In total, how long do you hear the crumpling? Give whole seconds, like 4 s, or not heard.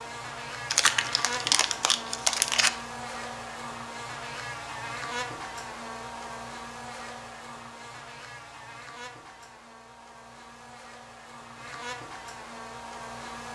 2 s.